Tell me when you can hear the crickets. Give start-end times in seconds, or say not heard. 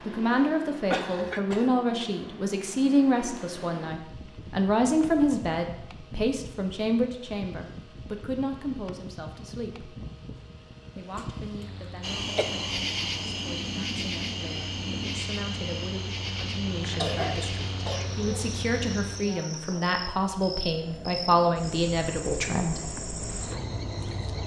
12.0-24.4.